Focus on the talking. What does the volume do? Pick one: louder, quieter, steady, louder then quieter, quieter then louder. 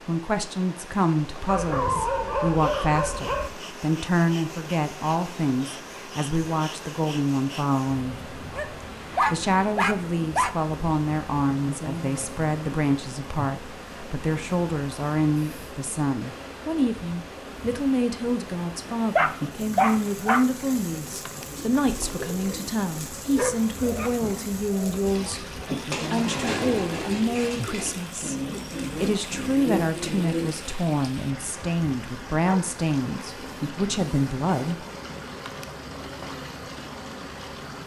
steady.